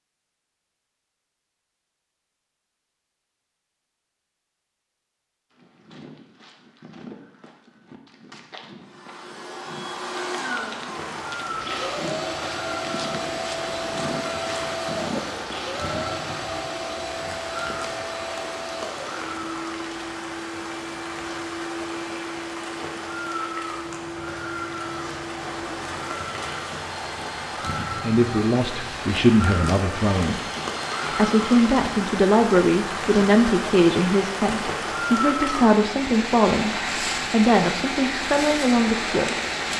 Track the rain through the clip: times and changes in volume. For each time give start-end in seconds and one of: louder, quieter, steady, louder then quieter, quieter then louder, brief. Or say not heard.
10.8-39.7 louder.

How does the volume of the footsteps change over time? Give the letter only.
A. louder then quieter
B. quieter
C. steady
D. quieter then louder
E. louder
E.